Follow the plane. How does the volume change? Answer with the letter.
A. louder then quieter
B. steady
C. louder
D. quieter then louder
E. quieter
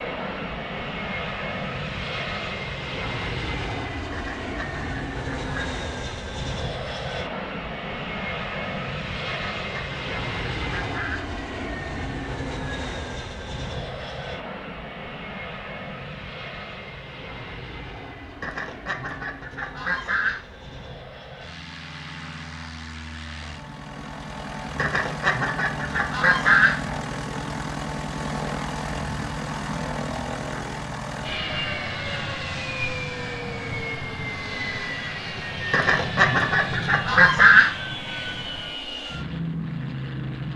D.